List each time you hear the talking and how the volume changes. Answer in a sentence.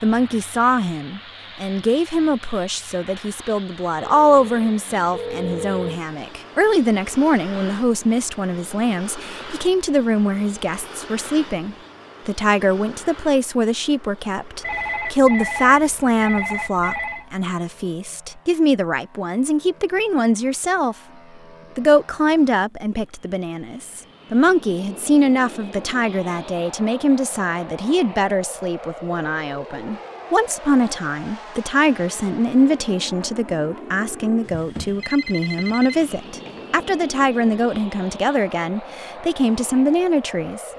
The talking can be heard from 0.0 to 20.9 s, at a steady volume; and from 21.8 to 40.7 s, at a steady volume.